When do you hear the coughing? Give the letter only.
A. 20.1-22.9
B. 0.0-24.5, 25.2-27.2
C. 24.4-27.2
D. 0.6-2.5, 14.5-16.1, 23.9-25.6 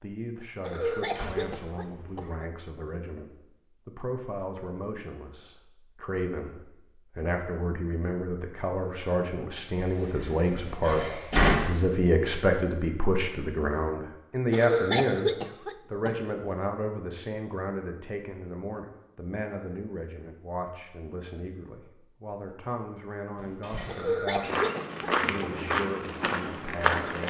D.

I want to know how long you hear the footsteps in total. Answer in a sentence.
The footsteps can be heard for 3 seconds in total.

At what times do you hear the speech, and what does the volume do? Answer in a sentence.
You can hear the speech from 0.0 to 24.5 s, getting louder then quieter; and briefly from 25.2 to 27.2 s.